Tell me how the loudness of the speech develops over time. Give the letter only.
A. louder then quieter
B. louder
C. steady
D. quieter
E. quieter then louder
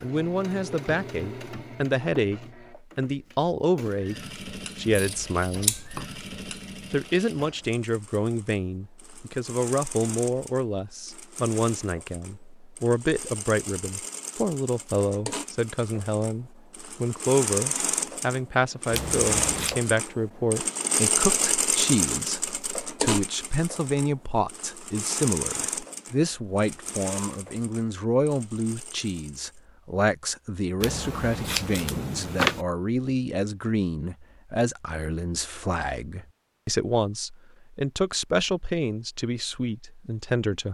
C.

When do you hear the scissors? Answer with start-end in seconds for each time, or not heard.
4.8-6.0, 18.9-19.8, 30.8-32.6.